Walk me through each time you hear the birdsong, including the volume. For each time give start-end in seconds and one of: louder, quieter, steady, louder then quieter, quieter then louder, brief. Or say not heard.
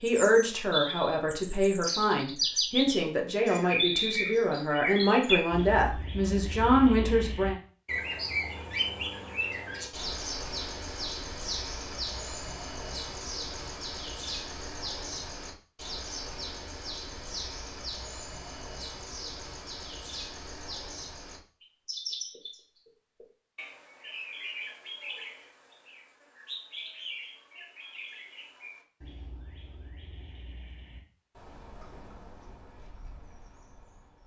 0.0-34.2 quieter.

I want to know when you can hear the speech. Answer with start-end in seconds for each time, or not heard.
0.0-7.5.